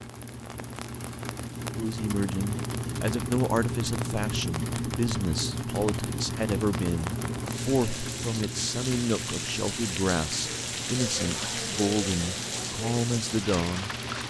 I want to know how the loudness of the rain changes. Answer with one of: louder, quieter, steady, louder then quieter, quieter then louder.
louder.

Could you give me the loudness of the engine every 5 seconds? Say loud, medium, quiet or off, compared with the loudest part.
loud, loud, medium.